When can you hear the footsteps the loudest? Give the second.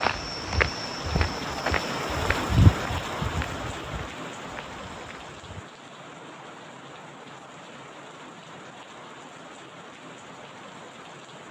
3 s.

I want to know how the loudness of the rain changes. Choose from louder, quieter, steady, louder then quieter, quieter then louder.
quieter.